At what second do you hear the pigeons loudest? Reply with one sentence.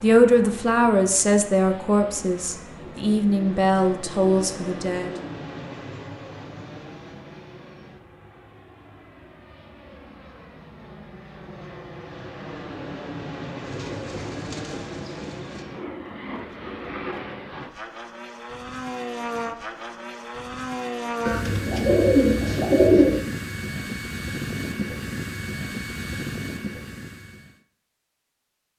The volume of the pigeons peaks at 23 seconds.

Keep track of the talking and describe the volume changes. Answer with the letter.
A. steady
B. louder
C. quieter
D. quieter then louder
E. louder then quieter
D.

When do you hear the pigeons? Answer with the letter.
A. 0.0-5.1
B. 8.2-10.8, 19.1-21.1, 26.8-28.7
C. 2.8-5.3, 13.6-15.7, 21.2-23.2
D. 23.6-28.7
C.